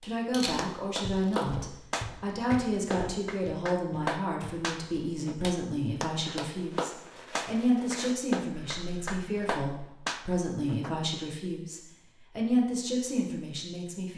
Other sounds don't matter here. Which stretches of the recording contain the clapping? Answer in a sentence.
You can hear the clapping from 0.0 to 10.9 s.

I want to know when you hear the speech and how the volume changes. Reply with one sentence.
You can hear the speech from 0.0 to 14.1 s, at a steady volume.